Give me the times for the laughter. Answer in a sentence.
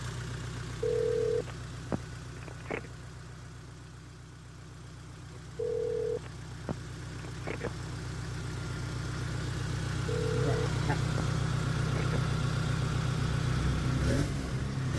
You can hear the laughter from 10.2 to 11.0 s.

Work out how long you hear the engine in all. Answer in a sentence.
You can hear the engine for 15 seconds altogether.